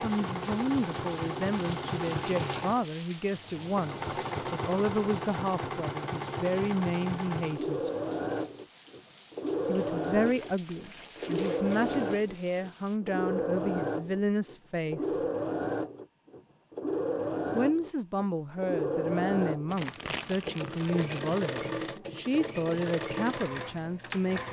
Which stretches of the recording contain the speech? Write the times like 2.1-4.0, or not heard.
0.0-7.9, 9.7-15.2, 17.5-24.4.